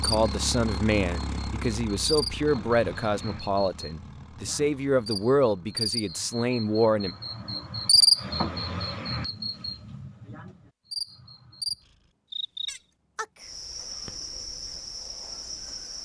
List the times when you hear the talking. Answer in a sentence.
The talking can be heard from 0.0 to 7.1 s.